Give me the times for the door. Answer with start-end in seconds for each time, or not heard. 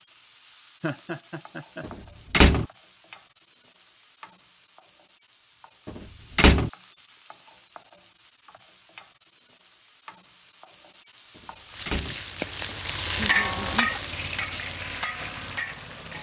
1.9-2.6, 5.8-6.7, 11.3-12.2.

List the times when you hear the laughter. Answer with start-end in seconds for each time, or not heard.
0.8-1.9, 13.2-13.9.